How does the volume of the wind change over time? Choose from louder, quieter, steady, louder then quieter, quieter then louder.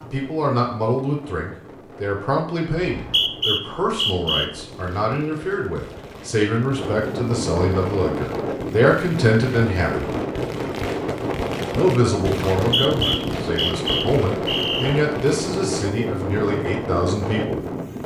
louder.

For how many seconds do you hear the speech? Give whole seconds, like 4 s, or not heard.
16 s.